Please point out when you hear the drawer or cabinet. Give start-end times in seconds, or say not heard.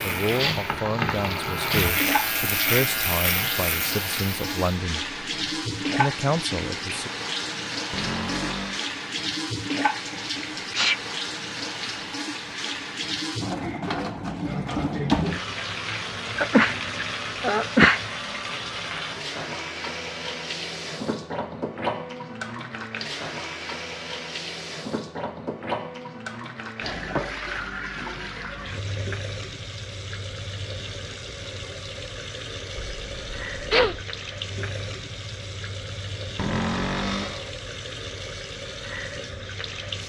7.9-8.8, 36.4-37.5.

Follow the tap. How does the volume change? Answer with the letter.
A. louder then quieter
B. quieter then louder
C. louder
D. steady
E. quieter
E.